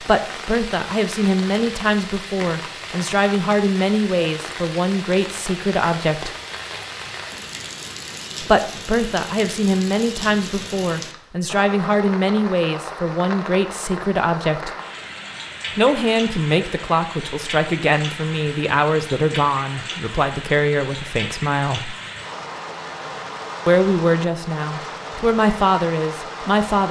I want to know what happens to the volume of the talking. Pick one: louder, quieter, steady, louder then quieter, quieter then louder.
steady.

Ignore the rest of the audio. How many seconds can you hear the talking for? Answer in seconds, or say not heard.
22 s.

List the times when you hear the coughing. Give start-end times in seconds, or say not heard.
not heard.